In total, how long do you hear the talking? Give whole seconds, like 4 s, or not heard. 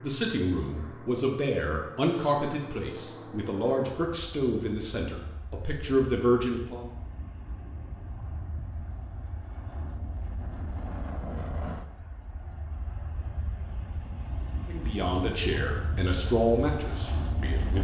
10 s.